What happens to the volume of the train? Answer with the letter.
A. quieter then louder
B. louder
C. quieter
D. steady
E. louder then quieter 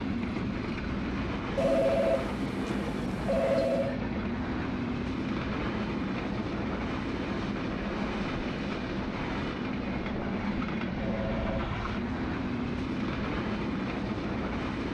D.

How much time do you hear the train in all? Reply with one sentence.
You can hear the train for 15 seconds altogether.